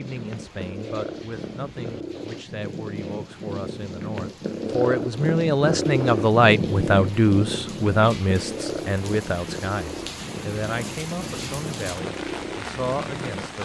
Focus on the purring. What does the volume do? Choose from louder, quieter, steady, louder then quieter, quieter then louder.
louder then quieter.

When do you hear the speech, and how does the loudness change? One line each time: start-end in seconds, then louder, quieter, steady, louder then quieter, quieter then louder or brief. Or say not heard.
0.0-13.6 louder then quieter.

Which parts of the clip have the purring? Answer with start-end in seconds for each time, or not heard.
0.0-13.6.